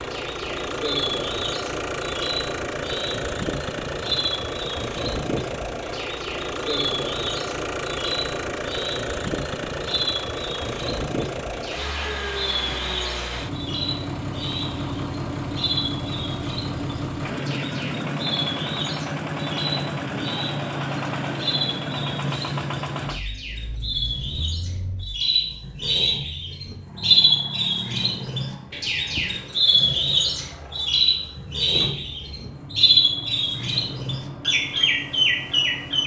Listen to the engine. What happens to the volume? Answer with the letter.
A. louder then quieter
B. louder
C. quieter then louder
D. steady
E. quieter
E.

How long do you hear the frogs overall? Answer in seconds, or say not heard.
not heard.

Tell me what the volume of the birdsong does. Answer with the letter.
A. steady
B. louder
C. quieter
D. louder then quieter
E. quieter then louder
B.